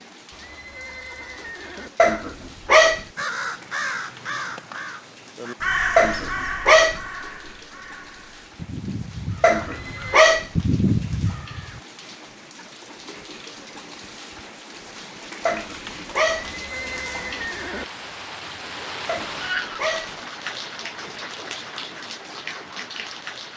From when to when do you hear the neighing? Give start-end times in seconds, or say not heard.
0.3-1.9, 9.6-10.2, 16.3-17.9.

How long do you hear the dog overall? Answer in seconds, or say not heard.
5 s.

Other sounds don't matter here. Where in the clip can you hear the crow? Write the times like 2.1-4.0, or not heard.
3.1-11.8.